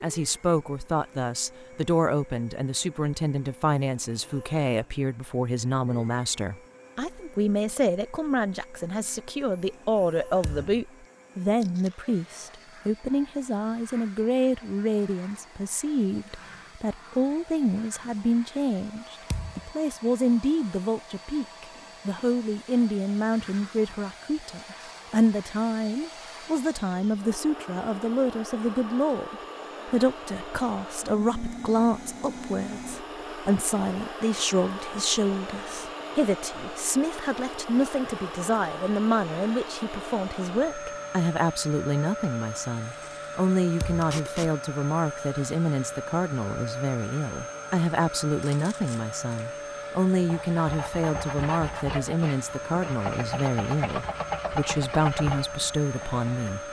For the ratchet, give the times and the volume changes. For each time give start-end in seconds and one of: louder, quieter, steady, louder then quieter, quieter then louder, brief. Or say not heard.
not heard.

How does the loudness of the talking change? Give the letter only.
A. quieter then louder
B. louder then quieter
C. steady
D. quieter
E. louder
C.